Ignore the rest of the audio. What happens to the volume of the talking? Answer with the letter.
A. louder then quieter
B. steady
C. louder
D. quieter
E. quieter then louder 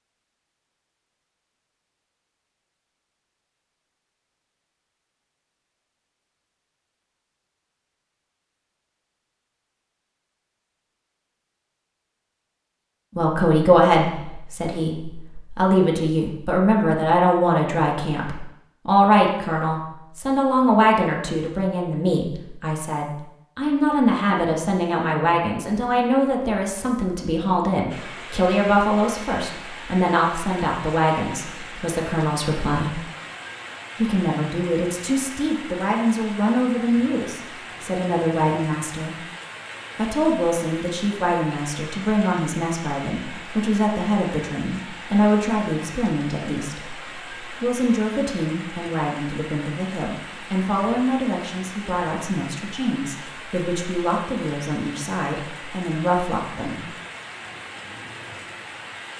D.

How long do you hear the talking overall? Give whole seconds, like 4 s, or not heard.
42 s.